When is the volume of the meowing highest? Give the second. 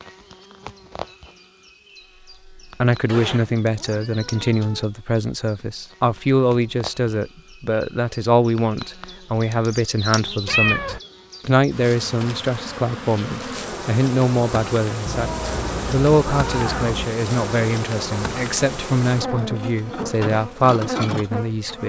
11 s.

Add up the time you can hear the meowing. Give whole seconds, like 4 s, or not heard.
4 s.